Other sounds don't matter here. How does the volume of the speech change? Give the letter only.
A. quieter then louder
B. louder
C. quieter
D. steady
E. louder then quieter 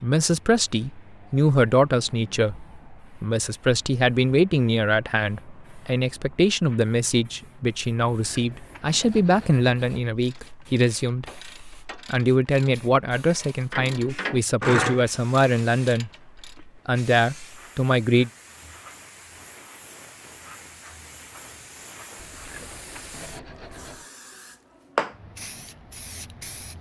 D.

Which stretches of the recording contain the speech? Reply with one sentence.
You can hear the speech from 0.0 to 18.3 s.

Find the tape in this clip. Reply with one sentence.
The tape can't be heard in this clip.